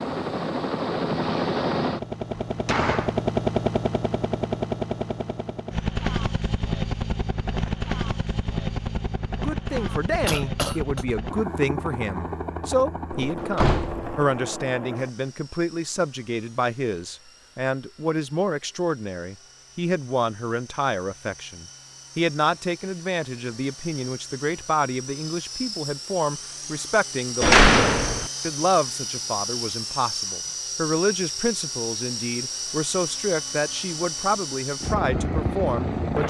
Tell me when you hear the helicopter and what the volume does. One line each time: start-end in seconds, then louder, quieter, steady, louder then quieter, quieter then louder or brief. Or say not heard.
0.0-36.2 quieter then louder.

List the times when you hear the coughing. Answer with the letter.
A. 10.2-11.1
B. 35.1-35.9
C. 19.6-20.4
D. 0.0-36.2
A.